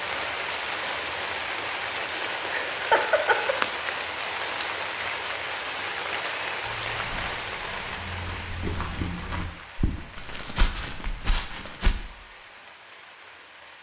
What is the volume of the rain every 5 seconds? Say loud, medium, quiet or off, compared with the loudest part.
loud, loud, quiet.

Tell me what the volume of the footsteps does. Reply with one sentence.
The loudness of the footsteps goes up.